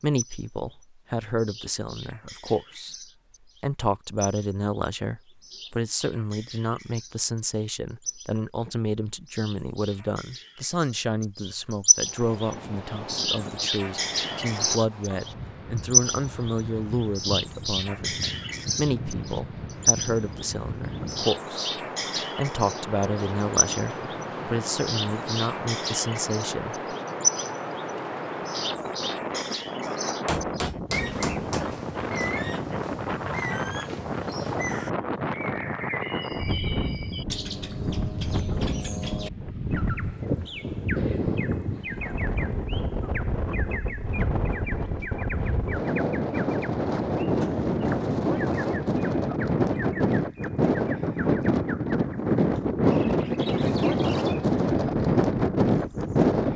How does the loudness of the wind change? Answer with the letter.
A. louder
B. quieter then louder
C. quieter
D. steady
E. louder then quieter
A.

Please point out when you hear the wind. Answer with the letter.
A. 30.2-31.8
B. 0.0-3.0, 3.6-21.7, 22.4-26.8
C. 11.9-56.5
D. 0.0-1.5
C.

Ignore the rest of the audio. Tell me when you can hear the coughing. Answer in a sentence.
The coughing can't be heard in this clip.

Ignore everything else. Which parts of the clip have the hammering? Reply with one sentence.
You can hear the hammering from 30.2 to 31.8 s.